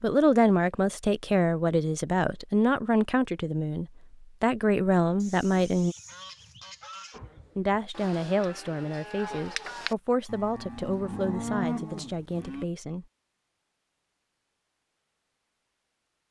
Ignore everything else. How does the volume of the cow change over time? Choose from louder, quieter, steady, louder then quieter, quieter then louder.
louder.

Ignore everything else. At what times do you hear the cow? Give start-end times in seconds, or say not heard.
7.1-12.7.